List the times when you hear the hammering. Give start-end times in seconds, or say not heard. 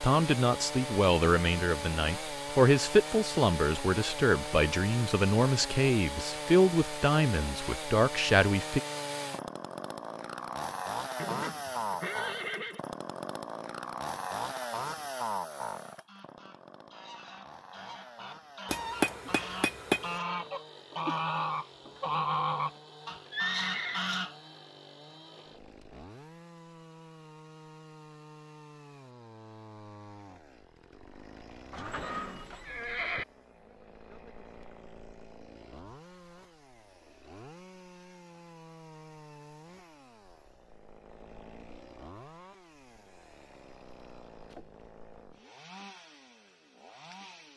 18.6-20.2.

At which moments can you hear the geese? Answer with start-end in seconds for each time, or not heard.
15.8-24.4.